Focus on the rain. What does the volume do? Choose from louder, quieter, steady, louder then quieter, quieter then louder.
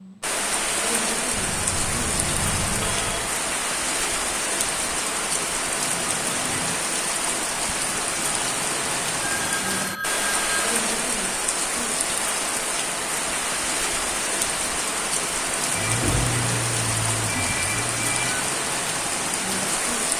steady.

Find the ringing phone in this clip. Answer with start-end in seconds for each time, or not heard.
1.3-3.3, 9.2-10.7, 15.8-18.5.